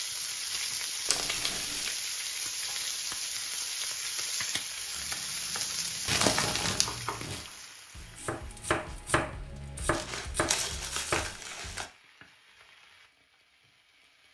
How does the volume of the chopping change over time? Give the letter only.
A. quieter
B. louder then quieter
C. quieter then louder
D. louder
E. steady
D.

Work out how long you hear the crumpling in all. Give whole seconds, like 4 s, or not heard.
4 s.